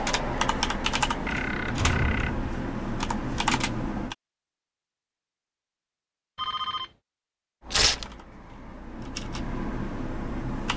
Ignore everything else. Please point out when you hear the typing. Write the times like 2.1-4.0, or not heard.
0.0-4.2, 7.6-10.7.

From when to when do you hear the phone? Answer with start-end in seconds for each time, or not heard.
1.2-2.4, 6.3-6.9.